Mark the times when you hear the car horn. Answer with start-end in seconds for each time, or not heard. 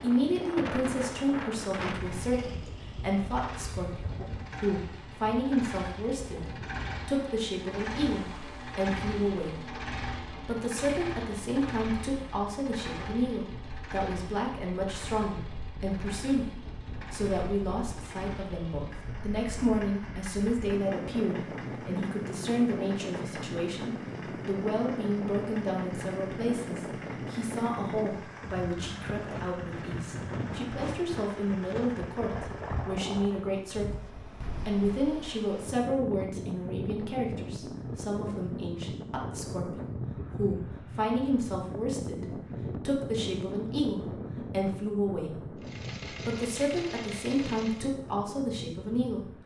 not heard.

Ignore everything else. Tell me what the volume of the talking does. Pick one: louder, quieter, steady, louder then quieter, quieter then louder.
steady.